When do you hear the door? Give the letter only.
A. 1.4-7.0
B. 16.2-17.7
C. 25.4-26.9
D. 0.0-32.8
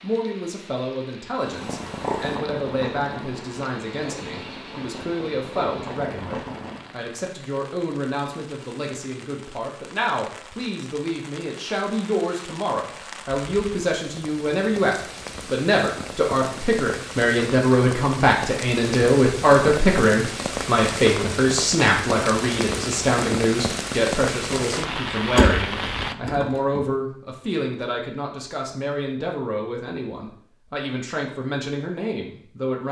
C.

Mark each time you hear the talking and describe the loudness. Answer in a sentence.
The talking can be heard from 0.0 to 32.8 s, getting louder then quieter.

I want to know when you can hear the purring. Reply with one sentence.
You can hear the purring from 1.4 to 7.0 s.